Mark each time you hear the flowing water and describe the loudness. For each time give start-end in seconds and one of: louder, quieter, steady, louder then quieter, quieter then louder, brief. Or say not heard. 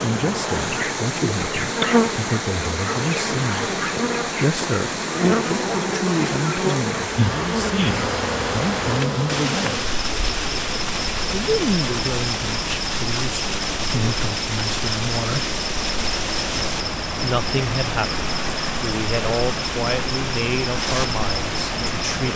0.0-22.3 steady.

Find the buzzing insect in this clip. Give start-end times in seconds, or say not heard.
0.0-22.3.